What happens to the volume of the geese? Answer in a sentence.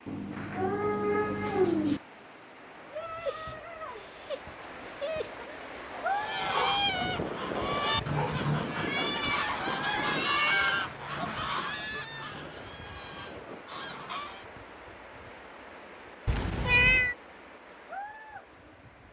The volume of the geese goes down.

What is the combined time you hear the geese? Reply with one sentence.
You can hear the geese for 8 seconds altogether.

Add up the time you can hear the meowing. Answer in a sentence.
You can hear the meowing for 5 seconds altogether.